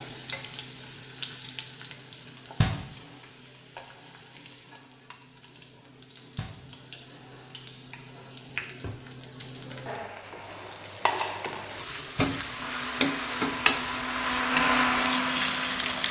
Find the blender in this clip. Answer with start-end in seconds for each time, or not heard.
12.4-16.0.